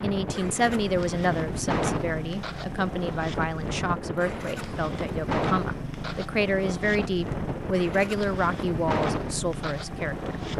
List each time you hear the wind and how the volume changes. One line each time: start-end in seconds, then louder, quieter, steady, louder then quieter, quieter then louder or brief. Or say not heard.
0.0-10.5 steady.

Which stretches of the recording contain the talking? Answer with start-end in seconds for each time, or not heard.
0.0-10.3.